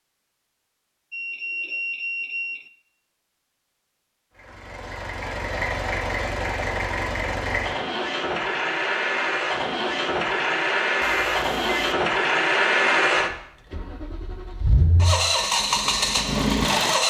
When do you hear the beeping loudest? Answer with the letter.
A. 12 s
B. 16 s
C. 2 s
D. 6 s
C.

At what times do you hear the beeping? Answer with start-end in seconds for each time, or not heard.
1.1-2.7, 11.0-11.9.